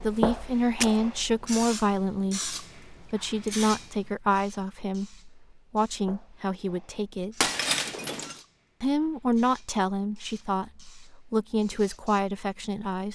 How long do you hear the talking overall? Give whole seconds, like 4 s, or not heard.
12 s.